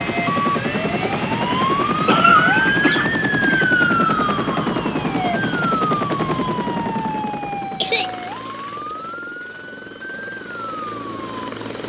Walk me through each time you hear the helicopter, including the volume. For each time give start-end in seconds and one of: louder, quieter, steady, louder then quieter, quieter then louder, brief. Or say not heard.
0.0-11.8 quieter.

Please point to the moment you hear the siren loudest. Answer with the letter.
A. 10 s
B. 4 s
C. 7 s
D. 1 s
B.